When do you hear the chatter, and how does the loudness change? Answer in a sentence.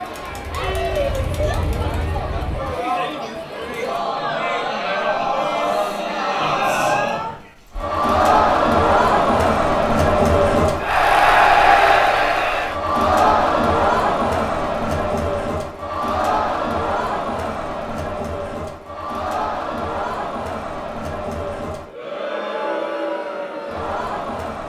You can hear the chatter from 0.0 to 24.6 s, getting louder then quieter.